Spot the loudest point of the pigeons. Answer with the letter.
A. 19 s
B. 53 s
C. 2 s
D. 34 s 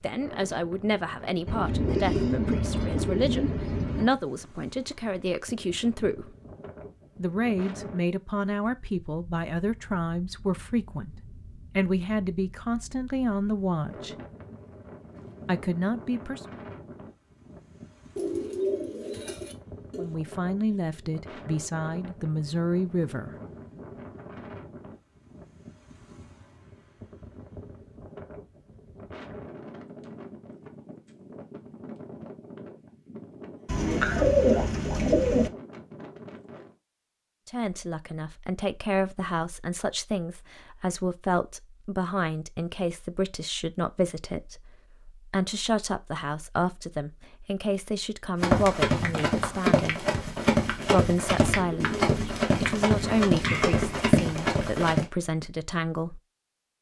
D.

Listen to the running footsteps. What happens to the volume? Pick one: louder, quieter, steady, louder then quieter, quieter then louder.
steady.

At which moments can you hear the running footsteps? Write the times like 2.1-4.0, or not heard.
48.4-55.0.